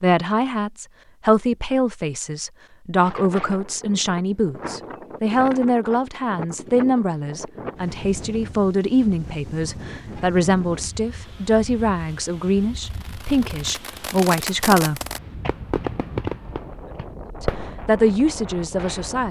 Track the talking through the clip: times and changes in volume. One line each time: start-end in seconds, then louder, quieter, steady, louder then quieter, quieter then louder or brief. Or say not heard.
0.0-15.0 steady
17.4-19.2 brief.